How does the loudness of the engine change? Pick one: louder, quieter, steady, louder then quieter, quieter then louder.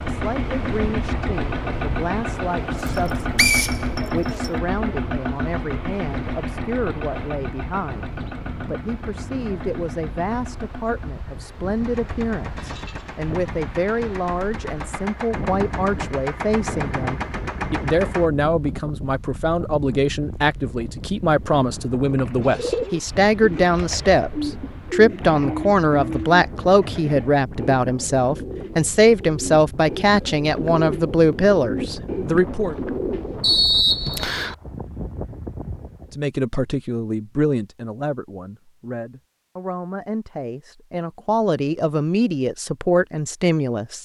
quieter then louder.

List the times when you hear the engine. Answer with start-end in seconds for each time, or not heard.
0.0-18.3.